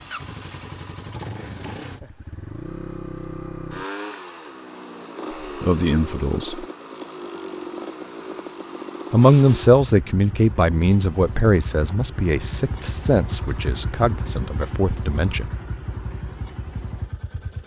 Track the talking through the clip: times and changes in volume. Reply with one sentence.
You can hear the talking briefly from 5.6 to 6.7 s; and from 9.1 to 15.5 s, getting quieter.